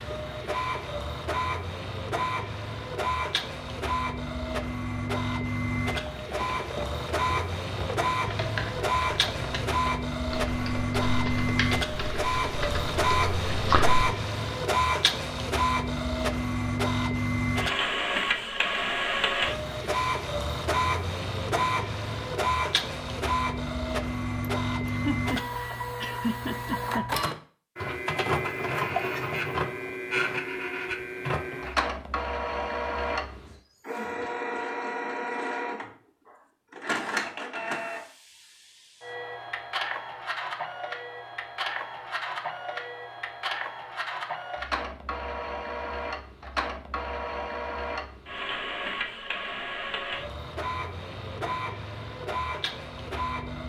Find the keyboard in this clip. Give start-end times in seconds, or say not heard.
5.8-14.1.